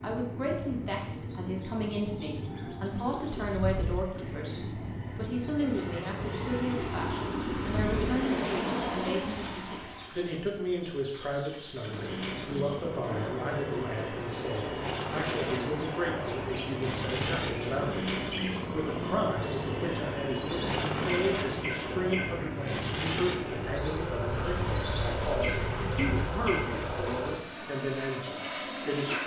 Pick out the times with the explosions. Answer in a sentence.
You can hear the explosions from 24.2 to 26.3 s.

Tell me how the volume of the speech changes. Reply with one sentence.
The loudness of the speech stays about the same.